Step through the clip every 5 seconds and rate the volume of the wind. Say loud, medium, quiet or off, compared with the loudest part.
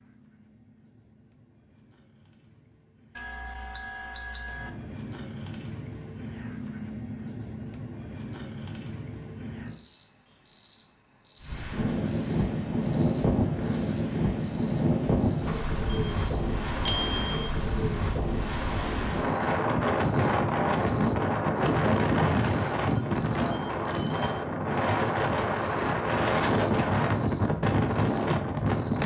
off, off, loud, loud, loud, loud.